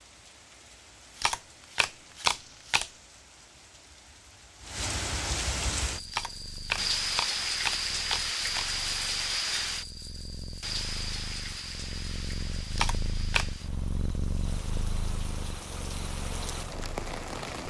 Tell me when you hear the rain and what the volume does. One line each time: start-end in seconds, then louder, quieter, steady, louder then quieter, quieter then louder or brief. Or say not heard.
0.0-17.6 louder then quieter.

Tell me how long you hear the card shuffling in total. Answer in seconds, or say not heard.
5 s.